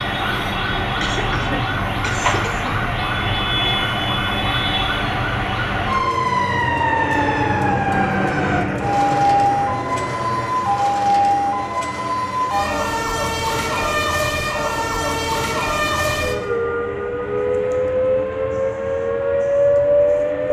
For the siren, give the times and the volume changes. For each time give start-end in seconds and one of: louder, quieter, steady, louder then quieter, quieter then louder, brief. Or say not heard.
0.0-20.4 steady.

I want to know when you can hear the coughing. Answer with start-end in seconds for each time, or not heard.
1.0-2.8.